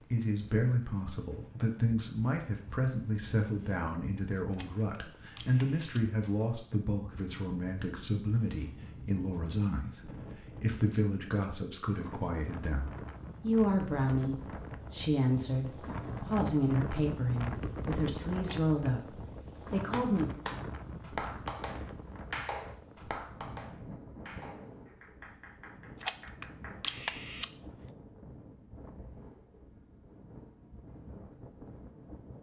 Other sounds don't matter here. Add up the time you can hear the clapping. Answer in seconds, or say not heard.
7 s.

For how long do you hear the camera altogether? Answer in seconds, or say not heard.
4 s.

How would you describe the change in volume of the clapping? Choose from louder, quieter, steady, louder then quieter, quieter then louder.
quieter.